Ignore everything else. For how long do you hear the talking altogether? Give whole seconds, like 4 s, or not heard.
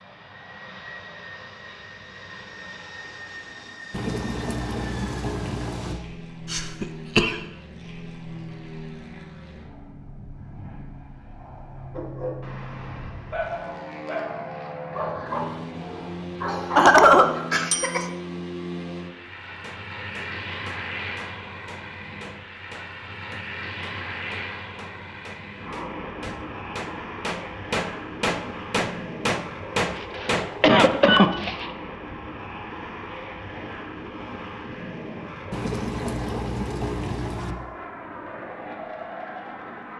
not heard.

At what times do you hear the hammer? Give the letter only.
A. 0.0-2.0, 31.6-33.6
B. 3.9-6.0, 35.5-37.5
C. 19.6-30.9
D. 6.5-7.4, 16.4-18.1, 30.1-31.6
C.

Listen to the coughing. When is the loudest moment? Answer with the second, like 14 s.
17 s.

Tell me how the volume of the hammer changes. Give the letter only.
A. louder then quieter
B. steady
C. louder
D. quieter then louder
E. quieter
C.